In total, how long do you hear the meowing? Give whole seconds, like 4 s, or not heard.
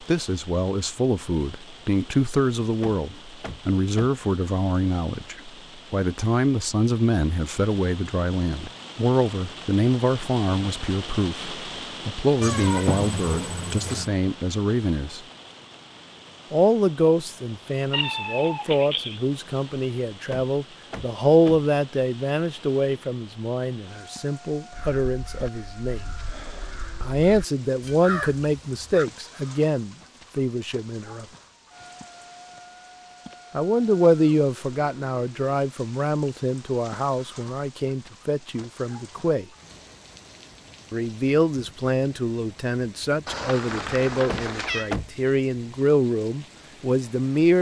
5 s.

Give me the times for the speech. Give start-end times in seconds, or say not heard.
0.1-15.2, 16.5-26.1, 27.0-31.2, 33.5-39.5, 40.9-47.5.